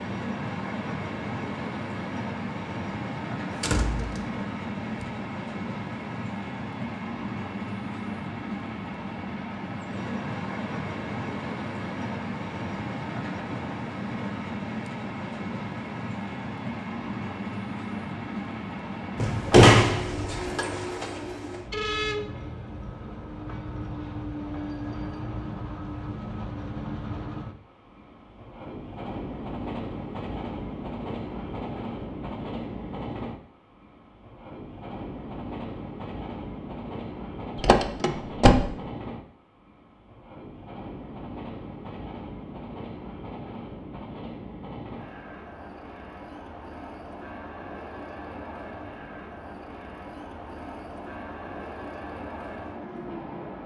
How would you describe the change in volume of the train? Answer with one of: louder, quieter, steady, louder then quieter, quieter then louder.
quieter.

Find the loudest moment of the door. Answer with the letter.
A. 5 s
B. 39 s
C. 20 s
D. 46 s
C.